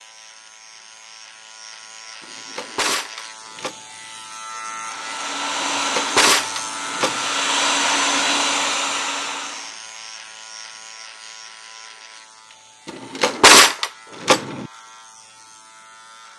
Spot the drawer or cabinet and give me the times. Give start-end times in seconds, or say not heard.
2.2-3.8, 5.6-7.2, 12.8-14.7.